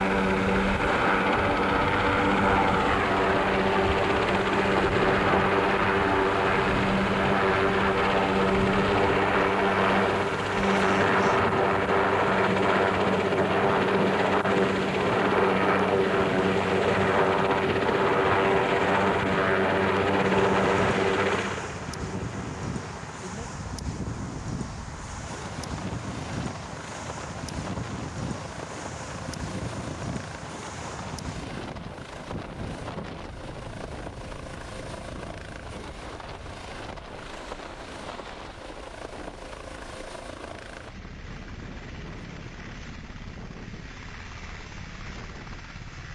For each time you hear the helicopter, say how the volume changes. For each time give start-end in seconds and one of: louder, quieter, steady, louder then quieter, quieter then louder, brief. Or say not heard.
0.0-46.1 quieter.